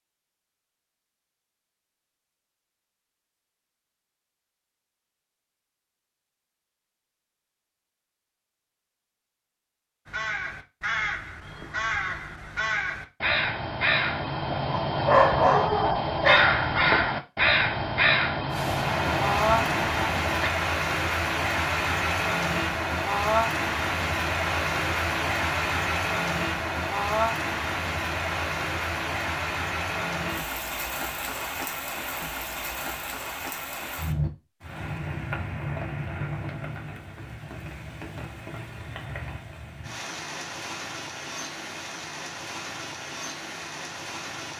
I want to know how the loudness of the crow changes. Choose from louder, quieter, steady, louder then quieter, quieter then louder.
louder then quieter.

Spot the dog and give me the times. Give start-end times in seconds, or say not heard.
14.7-16.4.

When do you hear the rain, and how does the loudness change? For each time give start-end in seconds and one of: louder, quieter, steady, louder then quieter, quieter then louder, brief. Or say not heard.
18.5-44.5 quieter.